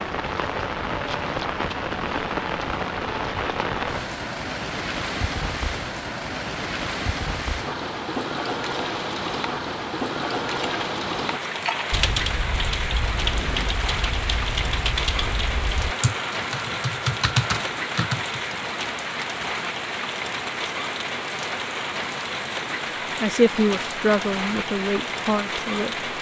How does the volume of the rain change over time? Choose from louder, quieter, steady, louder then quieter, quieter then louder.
steady.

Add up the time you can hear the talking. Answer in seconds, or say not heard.
3 s.